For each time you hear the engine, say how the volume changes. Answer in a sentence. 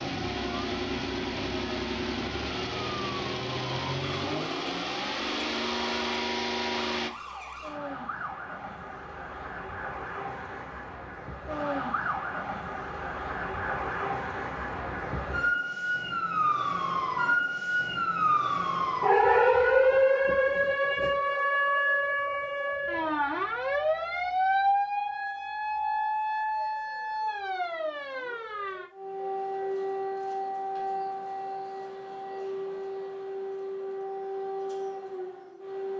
You can hear the engine from 0.0 to 7.1 s, at a steady volume.